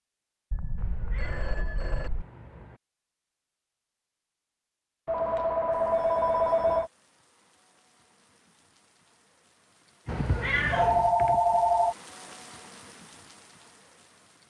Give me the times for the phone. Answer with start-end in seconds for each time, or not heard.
0.5-2.2, 5.0-6.9, 10.1-11.9.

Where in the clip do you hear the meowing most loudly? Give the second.
11 s.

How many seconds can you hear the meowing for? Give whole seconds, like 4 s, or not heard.
3 s.